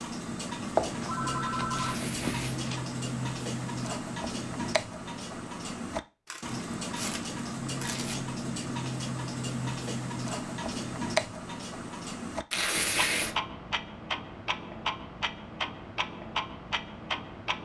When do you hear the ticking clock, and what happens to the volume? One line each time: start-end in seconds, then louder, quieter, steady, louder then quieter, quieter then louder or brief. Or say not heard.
0.0-17.6 steady.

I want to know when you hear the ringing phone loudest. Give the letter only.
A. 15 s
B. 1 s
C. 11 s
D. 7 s
B.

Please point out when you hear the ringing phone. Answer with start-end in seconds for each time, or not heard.
0.8-2.9.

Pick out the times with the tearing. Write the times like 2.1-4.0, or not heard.
1.8-2.6, 6.2-8.2, 12.5-13.3.